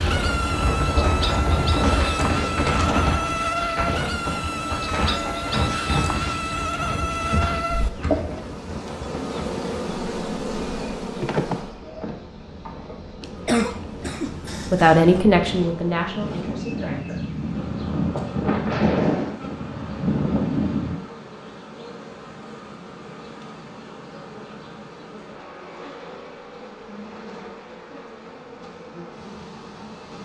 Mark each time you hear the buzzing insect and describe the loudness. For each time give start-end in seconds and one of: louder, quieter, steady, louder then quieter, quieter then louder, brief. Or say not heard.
0.0-30.1 quieter.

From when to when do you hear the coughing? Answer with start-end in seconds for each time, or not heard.
13.2-15.2.